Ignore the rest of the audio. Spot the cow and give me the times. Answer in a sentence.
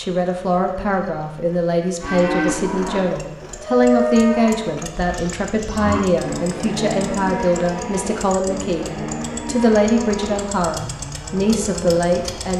You can hear the cow from 2.0 to 12.5 s.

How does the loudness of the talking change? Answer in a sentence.
The loudness of the talking stays about the same.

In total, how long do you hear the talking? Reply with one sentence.
The talking can be heard for 12 seconds in total.